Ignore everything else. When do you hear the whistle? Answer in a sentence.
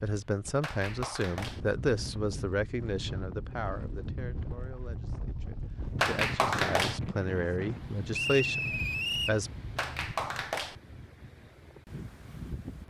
You can hear the whistle from 8.1 to 9.4 s.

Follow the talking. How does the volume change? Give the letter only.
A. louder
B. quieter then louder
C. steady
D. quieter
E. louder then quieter
B.